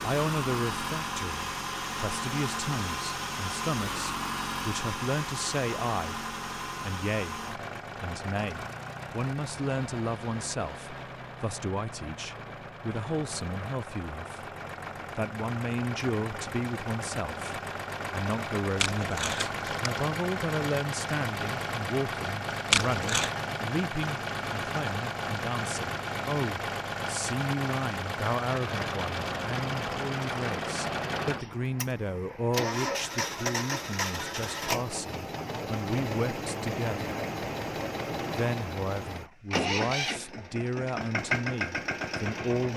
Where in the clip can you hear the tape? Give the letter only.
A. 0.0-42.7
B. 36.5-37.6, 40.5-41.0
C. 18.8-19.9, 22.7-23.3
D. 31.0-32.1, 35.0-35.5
C.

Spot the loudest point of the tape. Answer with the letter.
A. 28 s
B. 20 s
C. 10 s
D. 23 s
D.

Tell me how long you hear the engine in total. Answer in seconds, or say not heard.
43 s.